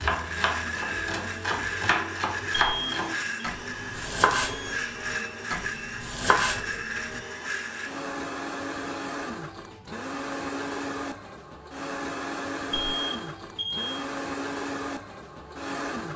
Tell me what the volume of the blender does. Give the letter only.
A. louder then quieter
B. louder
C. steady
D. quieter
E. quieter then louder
C.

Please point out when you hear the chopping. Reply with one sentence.
You can hear the chopping from 0.0 to 7.2 s.